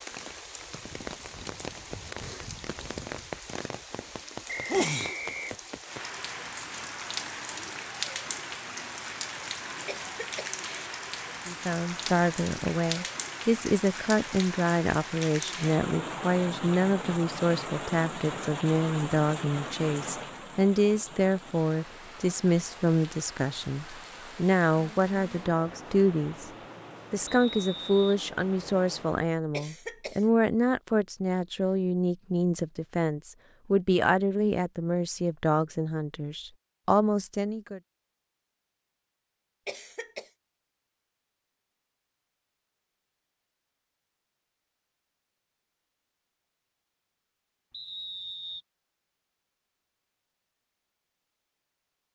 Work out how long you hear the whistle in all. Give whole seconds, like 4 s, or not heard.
3 s.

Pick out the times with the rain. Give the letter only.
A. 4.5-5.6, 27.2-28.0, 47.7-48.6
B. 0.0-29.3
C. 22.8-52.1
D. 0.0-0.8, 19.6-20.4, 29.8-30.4
B.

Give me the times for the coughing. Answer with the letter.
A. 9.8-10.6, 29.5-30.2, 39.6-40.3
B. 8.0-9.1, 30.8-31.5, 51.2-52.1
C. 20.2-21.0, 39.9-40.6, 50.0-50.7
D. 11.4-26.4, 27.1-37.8
A.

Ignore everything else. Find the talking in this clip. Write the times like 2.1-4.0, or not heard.
11.4-26.4, 27.1-37.8.